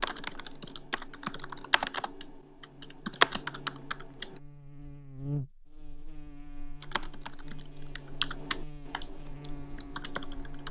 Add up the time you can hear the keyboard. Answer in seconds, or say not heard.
8 s.